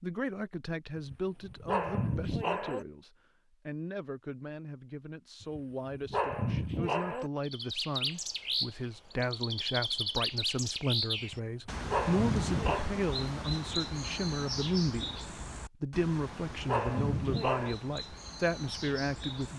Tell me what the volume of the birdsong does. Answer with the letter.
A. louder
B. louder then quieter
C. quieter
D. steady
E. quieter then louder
C.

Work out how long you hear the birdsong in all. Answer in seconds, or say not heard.
12 s.